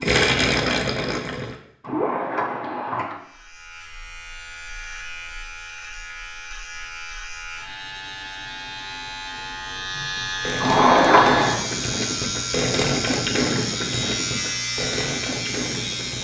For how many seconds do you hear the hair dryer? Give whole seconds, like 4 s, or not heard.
not heard.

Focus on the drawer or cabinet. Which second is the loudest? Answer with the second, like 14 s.
11 s.